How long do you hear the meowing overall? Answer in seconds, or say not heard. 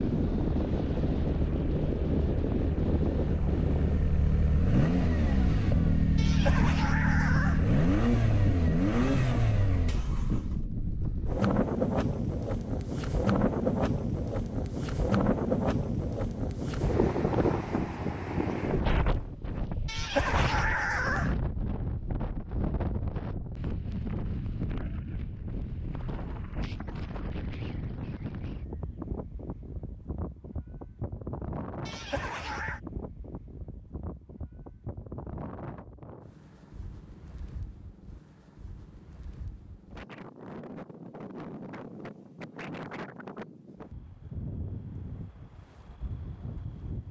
4 s.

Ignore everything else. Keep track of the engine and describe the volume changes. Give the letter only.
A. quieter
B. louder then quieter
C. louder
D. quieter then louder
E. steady
C.